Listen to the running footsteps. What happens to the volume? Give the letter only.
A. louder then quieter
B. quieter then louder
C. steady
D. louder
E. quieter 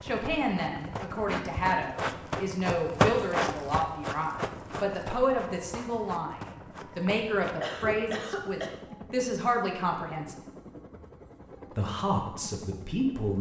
A.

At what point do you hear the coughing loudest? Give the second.
8 s.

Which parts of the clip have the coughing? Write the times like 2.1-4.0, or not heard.
1.2-1.8, 7.0-8.8.